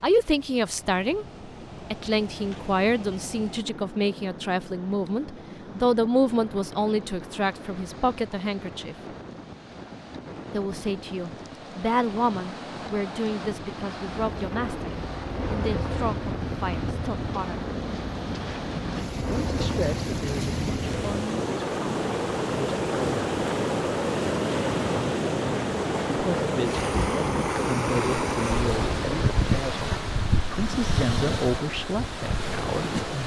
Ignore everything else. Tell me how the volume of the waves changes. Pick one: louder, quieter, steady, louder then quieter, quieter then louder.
louder.